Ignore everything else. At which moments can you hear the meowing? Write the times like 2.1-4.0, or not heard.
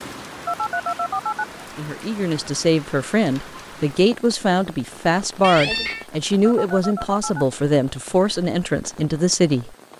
5.4-6.0.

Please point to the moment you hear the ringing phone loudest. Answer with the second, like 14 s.
1 s.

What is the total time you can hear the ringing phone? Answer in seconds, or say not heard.
2 s.